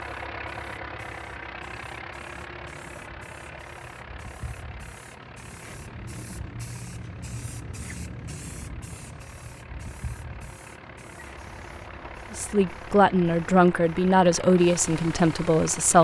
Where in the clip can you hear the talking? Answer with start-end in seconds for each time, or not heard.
12.3-15.9.